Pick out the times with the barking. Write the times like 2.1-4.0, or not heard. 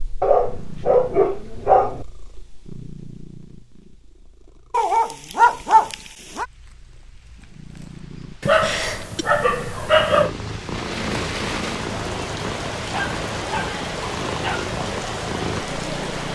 0.2-2.0, 4.7-6.5, 8.4-10.3, 12.9-14.7.